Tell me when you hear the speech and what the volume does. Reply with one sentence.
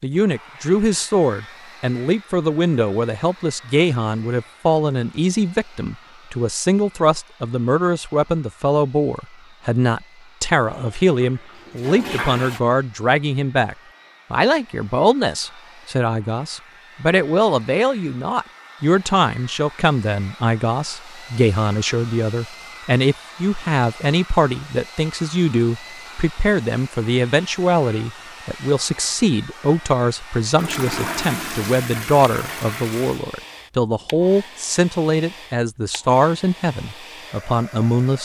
The speech can be heard from 0.0 to 38.2 s, at a steady volume.